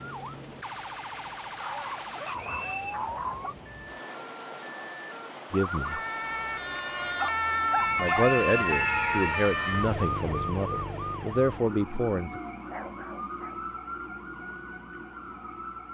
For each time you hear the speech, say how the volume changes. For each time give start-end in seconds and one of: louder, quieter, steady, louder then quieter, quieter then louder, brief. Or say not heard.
5.5-6.0 brief
8.0-12.4 quieter then louder.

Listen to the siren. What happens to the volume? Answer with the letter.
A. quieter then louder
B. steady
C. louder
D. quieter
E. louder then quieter
E.